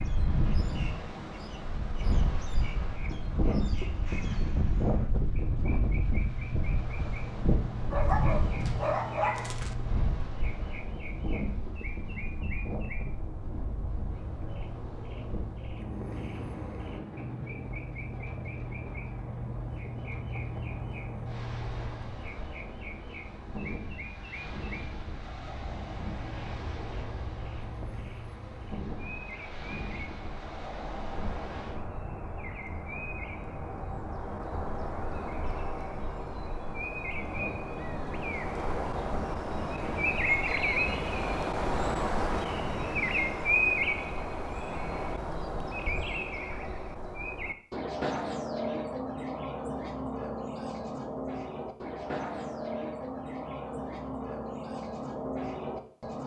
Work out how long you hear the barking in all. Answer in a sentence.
You can hear the barking for 2 seconds altogether.